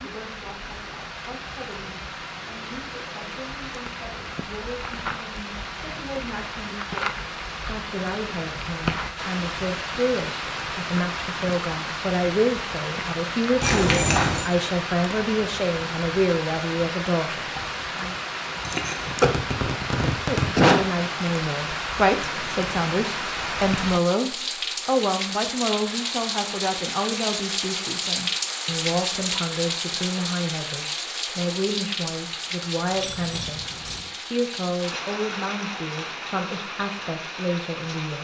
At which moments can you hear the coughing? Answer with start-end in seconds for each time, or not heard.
18.6-20.8.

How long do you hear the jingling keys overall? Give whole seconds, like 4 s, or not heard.
2 s.